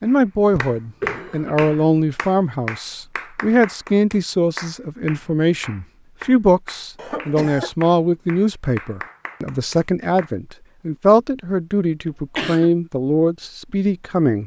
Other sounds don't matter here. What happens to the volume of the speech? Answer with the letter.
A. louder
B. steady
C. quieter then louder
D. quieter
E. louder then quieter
B.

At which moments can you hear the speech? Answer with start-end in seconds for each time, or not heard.
0.0-14.4.